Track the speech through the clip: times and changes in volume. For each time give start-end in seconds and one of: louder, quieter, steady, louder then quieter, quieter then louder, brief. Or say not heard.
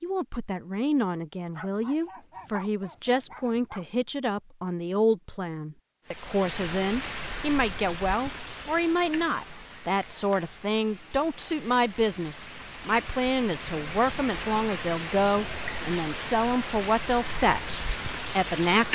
0.0-18.9 steady.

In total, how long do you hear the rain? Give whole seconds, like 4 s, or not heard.
13 s.